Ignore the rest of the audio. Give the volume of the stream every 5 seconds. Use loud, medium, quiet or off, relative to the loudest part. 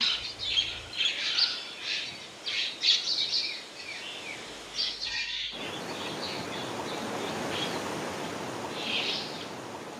medium, loud.